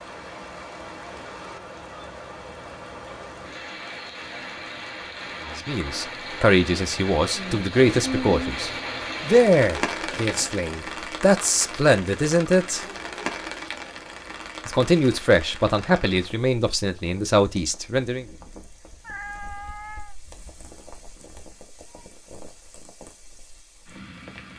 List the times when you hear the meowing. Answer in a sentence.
You can hear the meowing from 19.0 to 20.1 s.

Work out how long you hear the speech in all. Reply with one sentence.
You can hear the speech for 11 seconds altogether.